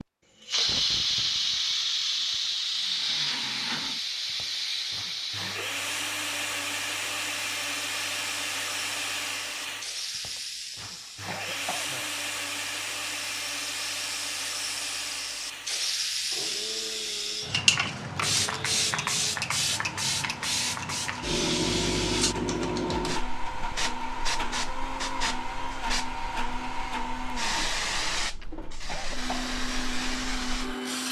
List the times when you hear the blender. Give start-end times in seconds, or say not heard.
2.8-31.0.